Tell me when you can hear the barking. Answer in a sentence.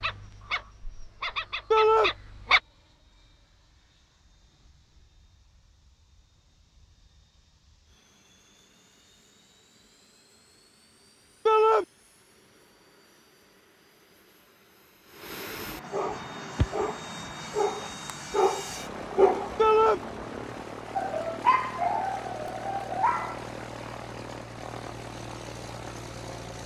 The barking can be heard from 0.0 to 2.6 s and from 15.9 to 23.5 s.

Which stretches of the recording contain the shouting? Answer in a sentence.
You can hear the shouting from 1.7 to 2.1 s, from 11.4 to 11.8 s and from 19.6 to 20.0 s.